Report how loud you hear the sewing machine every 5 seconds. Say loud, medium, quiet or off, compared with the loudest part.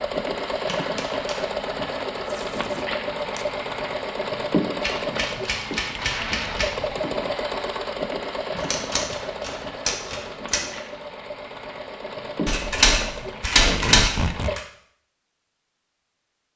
loud, loud, medium, off.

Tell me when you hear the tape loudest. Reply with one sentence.
The volume of the tape peaks at 14 seconds.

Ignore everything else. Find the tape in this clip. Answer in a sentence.
You can hear the tape from 2.2 to 3.5 s, from 6.0 to 7.0 s and from 13.4 to 14.6 s.